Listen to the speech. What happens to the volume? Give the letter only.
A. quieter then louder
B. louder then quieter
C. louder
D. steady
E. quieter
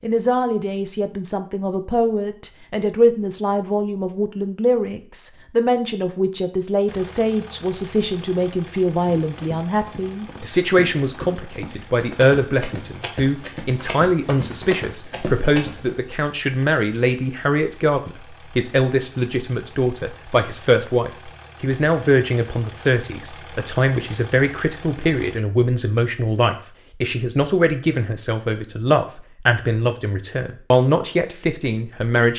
D.